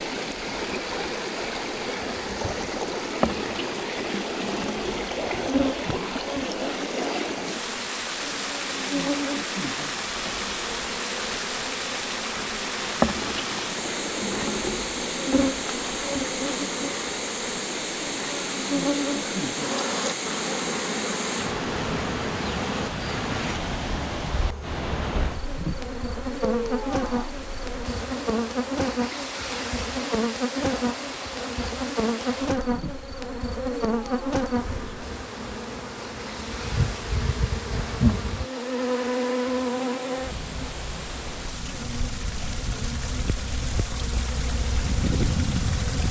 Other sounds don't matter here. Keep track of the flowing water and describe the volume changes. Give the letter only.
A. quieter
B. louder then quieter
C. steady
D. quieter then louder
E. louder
A.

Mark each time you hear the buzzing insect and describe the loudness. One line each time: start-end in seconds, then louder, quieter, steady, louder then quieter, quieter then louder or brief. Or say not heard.
0.1-46.0 steady.